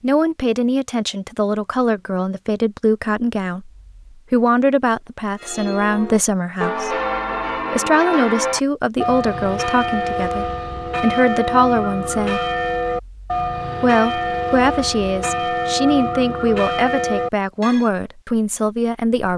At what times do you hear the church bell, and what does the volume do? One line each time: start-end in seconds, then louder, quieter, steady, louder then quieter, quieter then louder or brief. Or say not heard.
5.4-17.9 steady.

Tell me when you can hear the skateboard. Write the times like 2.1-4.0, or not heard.
not heard.